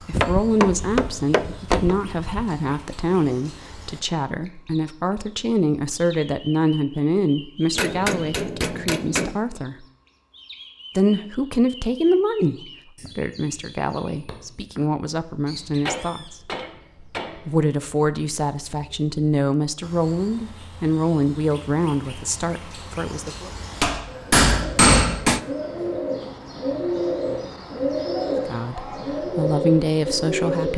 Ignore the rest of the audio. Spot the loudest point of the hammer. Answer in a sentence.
The volume of the hammer peaks at 25 seconds.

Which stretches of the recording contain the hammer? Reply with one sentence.
You can hear the hammer from 0.1 to 2.5 s, from 7.8 to 9.3 s, from 15.5 to 17.5 s and from 23.8 to 25.4 s.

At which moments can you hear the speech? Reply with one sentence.
The speech can be heard from 0.1 to 9.8 s, from 10.9 to 16.4 s, from 17.4 to 23.5 s and from 28.4 to 30.7 s.